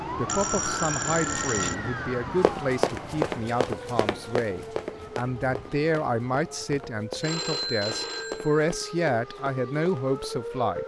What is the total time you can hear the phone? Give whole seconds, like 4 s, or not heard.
3 s.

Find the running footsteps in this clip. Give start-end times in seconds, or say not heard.
2.4-10.2.